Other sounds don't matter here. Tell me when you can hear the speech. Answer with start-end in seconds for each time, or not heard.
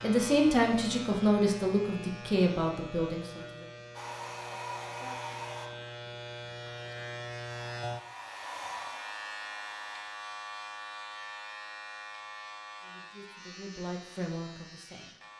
0.0-3.6, 12.8-15.1.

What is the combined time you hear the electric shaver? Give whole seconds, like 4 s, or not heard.
15 s.